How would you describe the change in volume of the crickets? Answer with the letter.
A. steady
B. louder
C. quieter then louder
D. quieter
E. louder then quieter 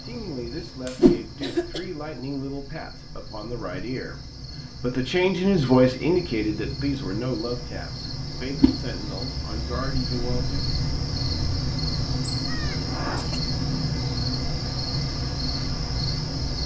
B.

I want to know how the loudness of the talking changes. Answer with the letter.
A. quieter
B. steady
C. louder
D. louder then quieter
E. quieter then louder
D.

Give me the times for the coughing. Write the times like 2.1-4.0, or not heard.
0.8-1.9, 12.4-13.4.